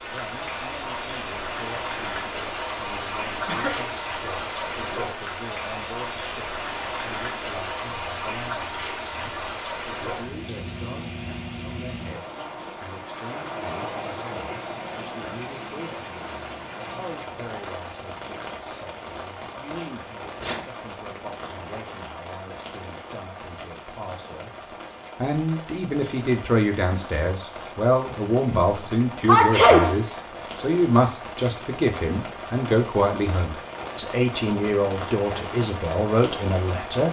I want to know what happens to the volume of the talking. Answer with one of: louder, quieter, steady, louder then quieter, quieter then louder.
louder.